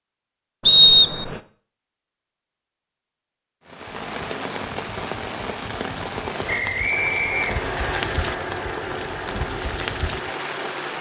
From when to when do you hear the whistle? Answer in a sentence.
The whistle can be heard from 0.7 to 1.4 s and from 6.5 to 8.0 s.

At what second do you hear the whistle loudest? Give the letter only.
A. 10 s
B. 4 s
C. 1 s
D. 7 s
C.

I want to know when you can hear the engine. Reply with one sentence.
You can hear the engine from 6.9 to 10.9 s.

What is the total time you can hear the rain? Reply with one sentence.
The rain can be heard for 7 seconds in total.